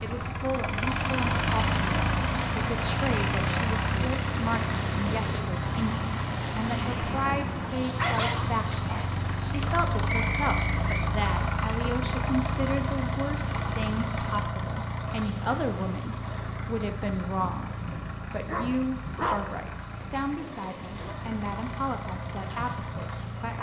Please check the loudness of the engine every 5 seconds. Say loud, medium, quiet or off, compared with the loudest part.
loud, loud, loud, medium, medium.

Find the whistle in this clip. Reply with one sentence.
The whistle can be heard from 10.1 to 11.1 s.